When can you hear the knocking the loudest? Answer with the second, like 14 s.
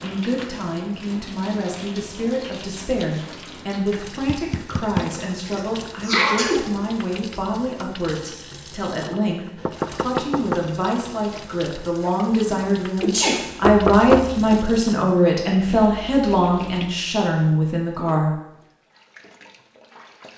14 s.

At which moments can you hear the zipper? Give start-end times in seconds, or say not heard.
not heard.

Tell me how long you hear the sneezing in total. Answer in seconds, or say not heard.
3 s.